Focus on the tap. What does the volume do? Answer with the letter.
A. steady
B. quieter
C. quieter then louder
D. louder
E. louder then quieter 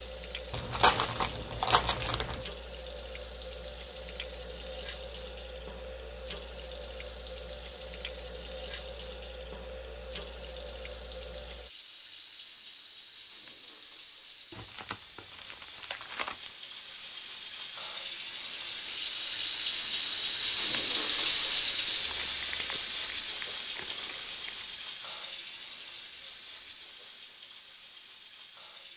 E.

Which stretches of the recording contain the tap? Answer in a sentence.
The tap can be heard from 0.0 to 28.9 s.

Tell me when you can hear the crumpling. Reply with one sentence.
The crumpling can be heard from 0.5 to 2.5 s, from 14.5 to 16.5 s and from 22.1 to 24.7 s.